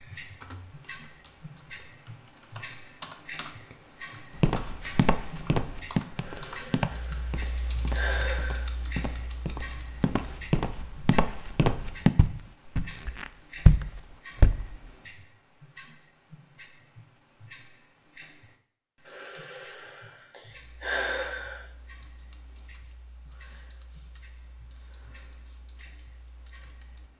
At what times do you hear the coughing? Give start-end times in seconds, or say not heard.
not heard.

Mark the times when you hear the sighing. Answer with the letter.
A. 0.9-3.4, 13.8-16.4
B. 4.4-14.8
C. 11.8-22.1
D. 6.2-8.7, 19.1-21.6
D.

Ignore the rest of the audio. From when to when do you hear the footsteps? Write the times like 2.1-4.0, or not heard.
4.4-14.8.